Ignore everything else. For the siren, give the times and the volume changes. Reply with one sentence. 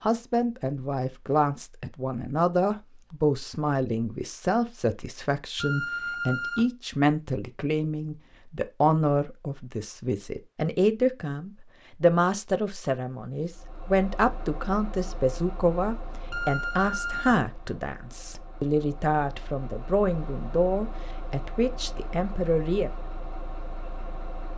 You can't hear the siren here.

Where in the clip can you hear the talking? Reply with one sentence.
The talking can be heard from 0.0 to 22.9 s.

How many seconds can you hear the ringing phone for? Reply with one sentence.
The ringing phone can be heard for 2 seconds in total.